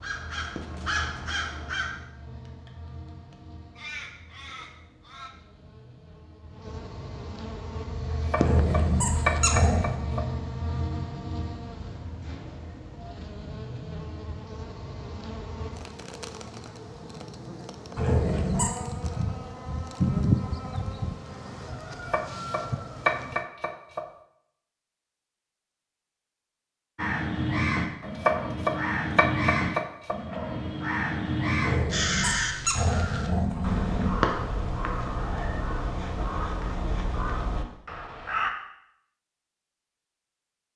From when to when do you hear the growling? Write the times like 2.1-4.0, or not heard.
8.3-10.0, 17.9-18.7, 31.6-34.1.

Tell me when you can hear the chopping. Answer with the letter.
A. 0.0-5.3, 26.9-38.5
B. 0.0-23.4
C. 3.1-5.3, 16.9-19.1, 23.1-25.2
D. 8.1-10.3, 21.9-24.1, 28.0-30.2
D.